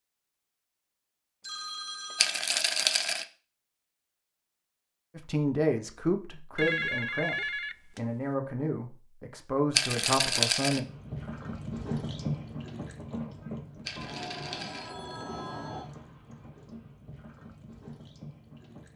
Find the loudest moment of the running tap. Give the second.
12 s.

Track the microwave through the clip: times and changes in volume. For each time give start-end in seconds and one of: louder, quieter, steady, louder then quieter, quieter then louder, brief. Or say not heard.
not heard.